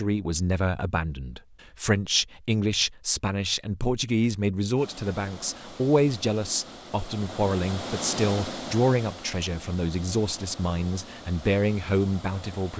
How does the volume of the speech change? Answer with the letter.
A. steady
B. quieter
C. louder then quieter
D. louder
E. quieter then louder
A.